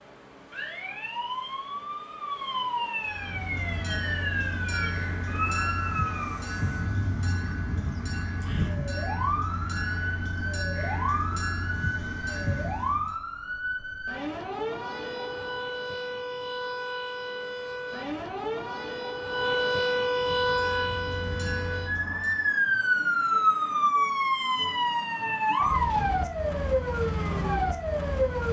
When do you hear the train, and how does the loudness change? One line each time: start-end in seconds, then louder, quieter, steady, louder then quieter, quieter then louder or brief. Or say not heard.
3.0-13.2 steady
20.1-22.6 brief.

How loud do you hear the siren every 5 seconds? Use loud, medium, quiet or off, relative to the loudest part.
medium, medium, medium, medium, loud, loud.